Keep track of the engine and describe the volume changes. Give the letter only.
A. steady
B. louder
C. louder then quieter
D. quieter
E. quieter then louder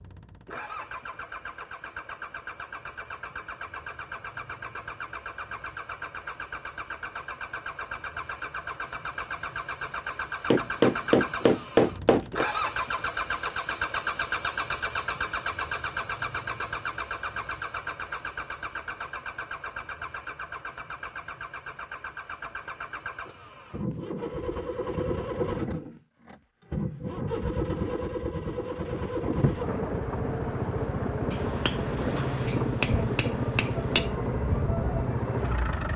B.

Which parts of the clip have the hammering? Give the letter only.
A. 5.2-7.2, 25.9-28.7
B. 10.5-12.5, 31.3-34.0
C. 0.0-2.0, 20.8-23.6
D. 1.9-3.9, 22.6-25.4
B.